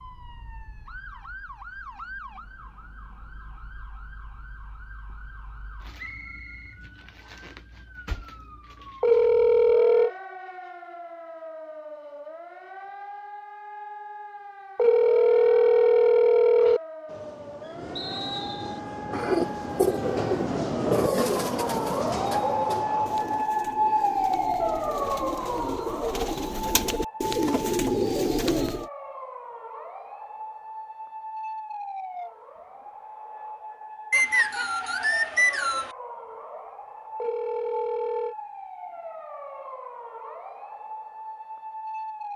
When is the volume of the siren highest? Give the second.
24 s.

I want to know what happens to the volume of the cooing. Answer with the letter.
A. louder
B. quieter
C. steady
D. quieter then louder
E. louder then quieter
D.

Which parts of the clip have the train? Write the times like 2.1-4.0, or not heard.
17.1-23.4.